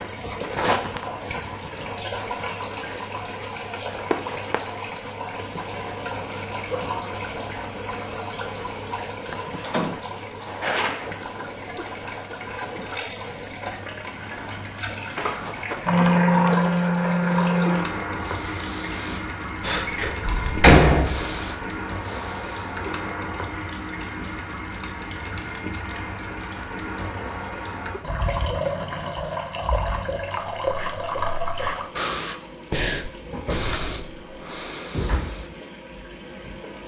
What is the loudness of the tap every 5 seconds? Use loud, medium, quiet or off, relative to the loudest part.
medium, medium, medium, loud, medium, medium, medium, quiet.